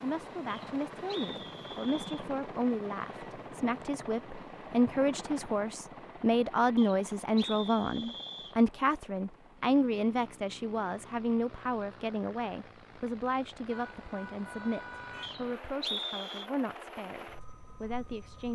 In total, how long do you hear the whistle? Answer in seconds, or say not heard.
5 s.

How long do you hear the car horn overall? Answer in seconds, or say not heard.
2 s.